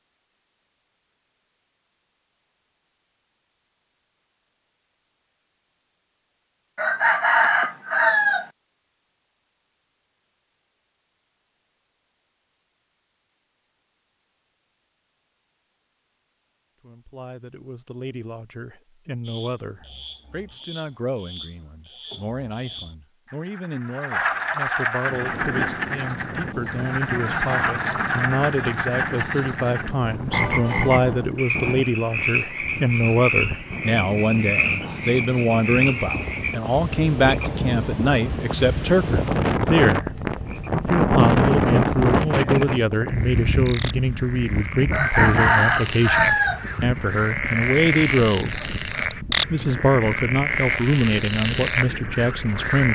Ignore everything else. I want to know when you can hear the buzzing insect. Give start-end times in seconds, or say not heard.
not heard.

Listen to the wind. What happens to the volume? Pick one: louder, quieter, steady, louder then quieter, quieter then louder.
louder then quieter.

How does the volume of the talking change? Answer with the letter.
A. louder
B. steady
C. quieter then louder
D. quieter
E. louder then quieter
A.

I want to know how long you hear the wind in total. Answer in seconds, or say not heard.
28 s.